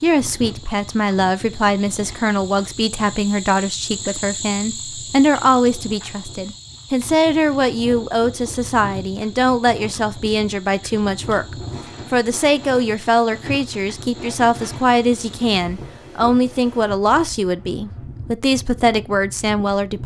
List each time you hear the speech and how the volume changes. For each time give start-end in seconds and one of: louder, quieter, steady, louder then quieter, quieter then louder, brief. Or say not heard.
0.0-20.0 steady.